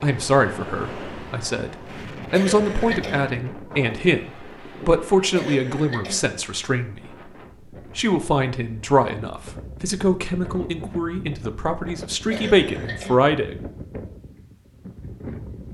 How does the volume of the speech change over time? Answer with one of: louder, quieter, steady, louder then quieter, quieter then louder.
steady.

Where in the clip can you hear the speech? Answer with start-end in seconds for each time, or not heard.
0.0-7.3, 8.0-13.6.